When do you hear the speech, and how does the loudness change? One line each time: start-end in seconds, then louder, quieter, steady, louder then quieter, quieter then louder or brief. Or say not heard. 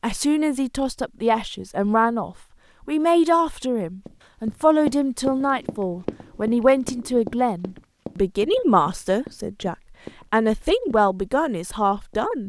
0.0-12.4 steady.